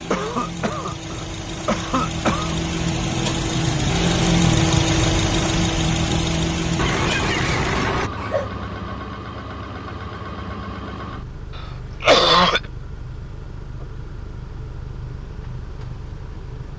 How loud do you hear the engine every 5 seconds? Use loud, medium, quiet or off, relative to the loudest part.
loud, loud, quiet, quiet.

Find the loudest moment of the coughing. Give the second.
12 s.